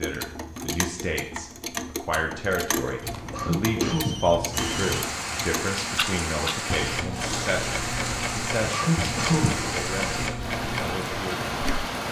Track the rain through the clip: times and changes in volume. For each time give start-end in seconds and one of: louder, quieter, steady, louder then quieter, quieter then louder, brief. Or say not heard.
4.5-12.0 steady.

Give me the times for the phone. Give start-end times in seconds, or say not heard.
3.0-5.0.